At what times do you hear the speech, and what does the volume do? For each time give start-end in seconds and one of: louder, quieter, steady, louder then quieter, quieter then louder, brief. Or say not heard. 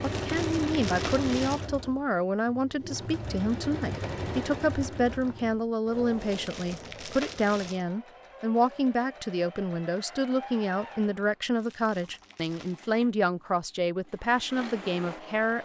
0.0-15.6 steady.